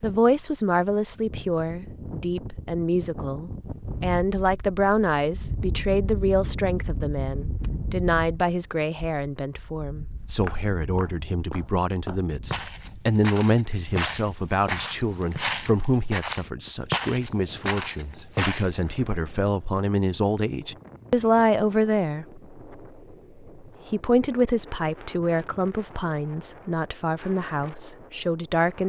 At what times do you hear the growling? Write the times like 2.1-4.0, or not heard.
not heard.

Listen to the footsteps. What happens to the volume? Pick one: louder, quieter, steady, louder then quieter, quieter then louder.
louder.